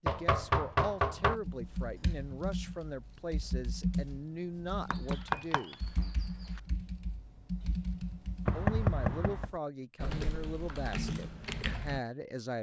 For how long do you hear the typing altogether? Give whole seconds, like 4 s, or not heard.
11 s.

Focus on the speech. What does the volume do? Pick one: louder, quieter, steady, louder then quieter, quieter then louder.
steady.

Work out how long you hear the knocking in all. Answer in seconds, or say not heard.
4 s.